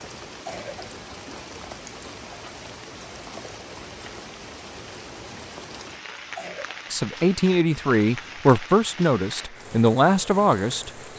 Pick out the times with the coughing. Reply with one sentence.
You can hear the coughing from 0.2 to 1.0 s and from 6.2 to 6.8 s.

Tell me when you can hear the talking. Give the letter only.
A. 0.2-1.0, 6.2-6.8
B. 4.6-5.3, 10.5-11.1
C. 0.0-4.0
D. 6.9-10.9
D.